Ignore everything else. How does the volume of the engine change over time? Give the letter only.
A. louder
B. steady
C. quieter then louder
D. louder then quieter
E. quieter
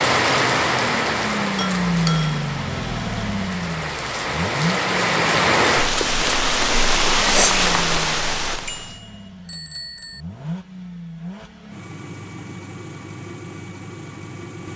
E.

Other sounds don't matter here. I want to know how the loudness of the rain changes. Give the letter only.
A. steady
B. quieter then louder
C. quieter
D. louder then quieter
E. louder
B.